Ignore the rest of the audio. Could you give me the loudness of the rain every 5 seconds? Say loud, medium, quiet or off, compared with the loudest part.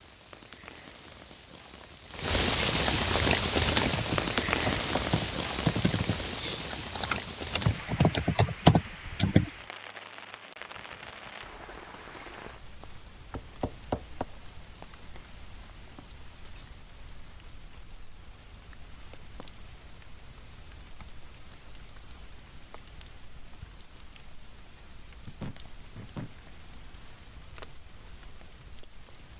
loud, medium, quiet, quiet, quiet, quiet.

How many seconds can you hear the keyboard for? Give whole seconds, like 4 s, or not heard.
6 s.